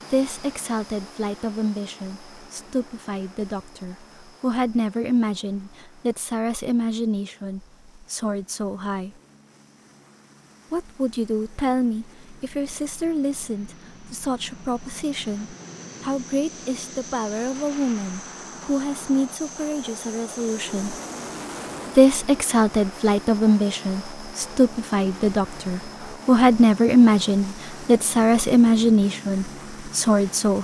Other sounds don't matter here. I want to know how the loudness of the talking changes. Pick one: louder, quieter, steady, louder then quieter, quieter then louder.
louder.